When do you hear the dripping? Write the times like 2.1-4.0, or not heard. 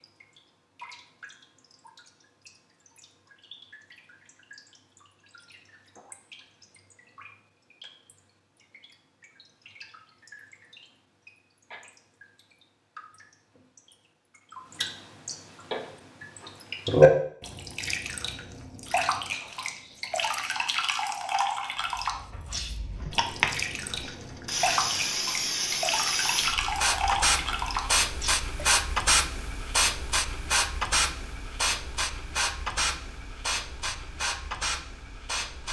0.0-28.4.